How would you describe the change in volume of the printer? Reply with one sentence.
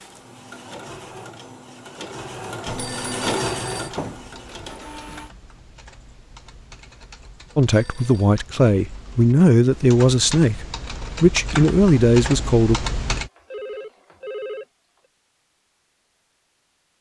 The volume of the printer goes up, then down.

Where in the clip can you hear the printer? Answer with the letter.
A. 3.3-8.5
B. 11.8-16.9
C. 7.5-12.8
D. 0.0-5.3
D.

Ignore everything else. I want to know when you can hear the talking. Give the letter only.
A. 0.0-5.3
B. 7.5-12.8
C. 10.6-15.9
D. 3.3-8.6
B.